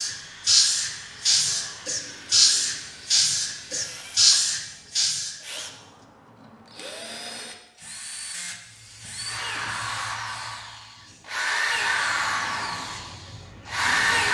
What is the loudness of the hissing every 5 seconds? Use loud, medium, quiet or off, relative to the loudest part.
loud, quiet, quiet.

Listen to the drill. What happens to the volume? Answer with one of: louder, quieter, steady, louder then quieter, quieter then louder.
louder.